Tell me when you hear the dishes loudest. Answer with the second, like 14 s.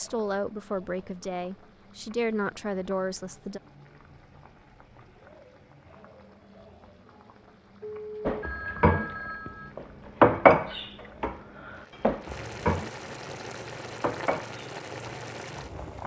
10 s.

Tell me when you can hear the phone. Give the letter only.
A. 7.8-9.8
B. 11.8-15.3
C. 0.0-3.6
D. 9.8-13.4
A.